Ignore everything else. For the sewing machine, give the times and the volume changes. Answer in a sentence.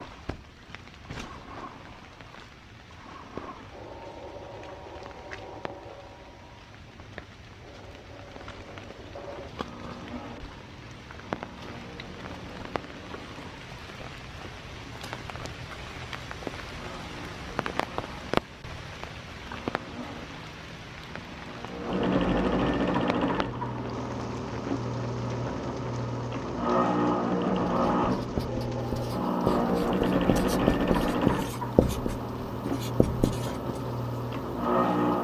The sewing machine can be heard from 0.0 to 35.1 s, getting louder.